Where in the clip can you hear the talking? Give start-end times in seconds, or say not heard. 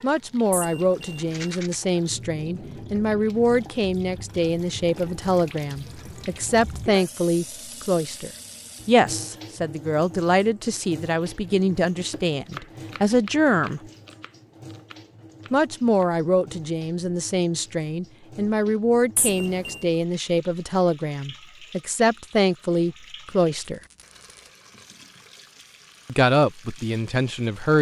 0.0-13.8, 15.5-23.8, 26.1-27.7.